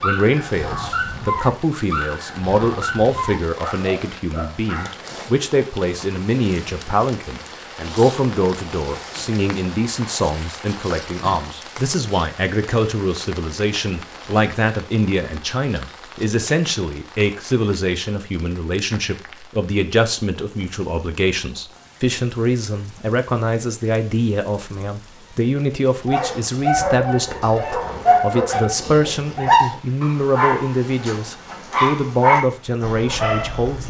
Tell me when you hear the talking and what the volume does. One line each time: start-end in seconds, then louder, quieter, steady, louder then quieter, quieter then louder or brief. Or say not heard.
0.0-33.8 steady.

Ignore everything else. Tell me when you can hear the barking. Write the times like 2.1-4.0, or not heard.
0.0-5.0, 26.1-33.8.